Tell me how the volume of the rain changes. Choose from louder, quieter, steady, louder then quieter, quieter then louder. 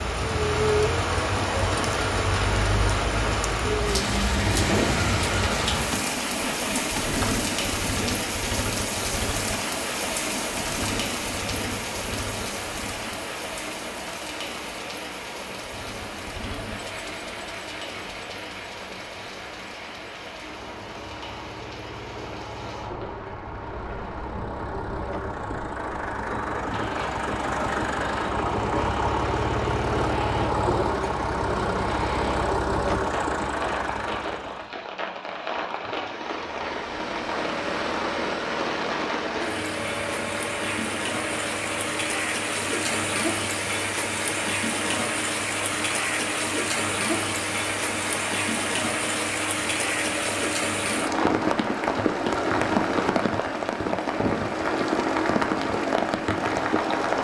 quieter then louder.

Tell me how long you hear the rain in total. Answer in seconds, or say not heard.
57 s.